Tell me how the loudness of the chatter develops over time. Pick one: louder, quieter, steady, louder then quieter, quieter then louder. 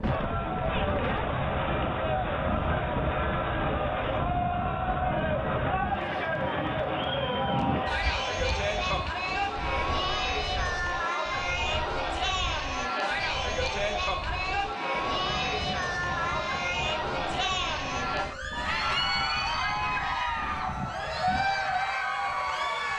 steady.